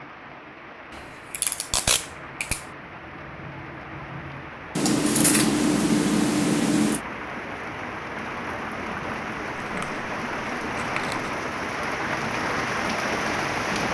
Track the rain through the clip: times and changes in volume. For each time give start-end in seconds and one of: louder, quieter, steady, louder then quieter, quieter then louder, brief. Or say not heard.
0.0-13.8 louder.